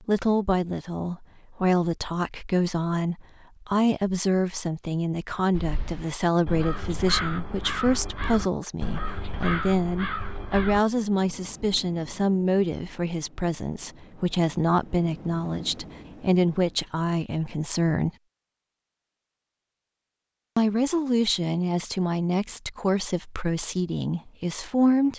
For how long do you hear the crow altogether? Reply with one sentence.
You can hear the crow for 5 seconds altogether.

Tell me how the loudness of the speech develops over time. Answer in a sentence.
The loudness of the speech stays about the same.